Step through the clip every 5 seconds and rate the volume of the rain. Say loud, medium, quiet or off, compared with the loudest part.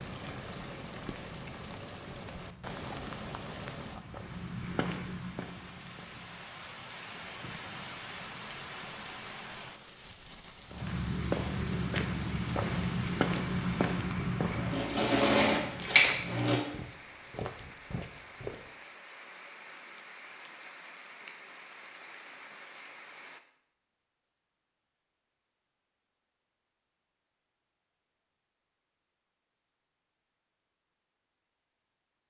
loud, loud, loud, medium, medium, off, off.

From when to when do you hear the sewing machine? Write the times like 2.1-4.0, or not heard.
13.3-16.6.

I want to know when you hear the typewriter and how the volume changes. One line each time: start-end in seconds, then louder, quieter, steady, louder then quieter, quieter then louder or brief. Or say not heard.
not heard.